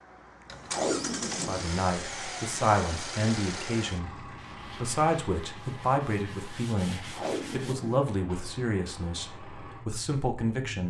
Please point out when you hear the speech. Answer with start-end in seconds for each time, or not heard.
1.4-10.8.